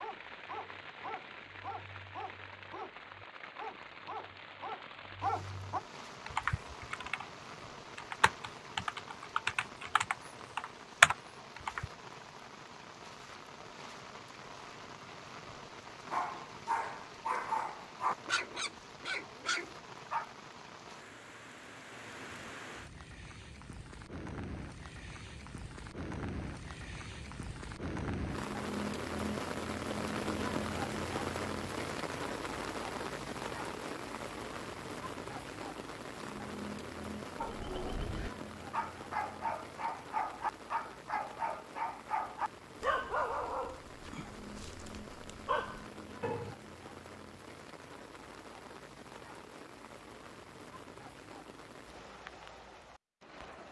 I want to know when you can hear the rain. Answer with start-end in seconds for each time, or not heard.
0.0-53.6.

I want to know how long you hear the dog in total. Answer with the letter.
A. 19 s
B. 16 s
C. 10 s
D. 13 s
A.